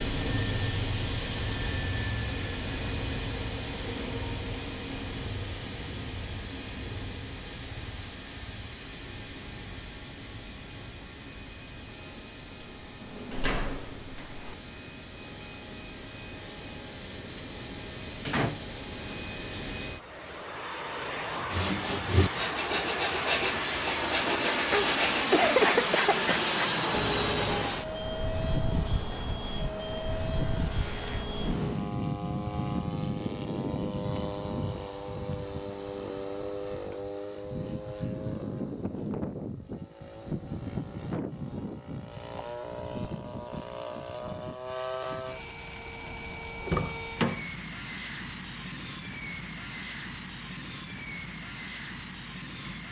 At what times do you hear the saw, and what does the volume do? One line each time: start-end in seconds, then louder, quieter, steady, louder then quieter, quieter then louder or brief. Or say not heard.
21.3-31.9 quieter.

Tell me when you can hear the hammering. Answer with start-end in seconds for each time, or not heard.
not heard.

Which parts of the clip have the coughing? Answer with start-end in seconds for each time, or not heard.
24.7-26.3.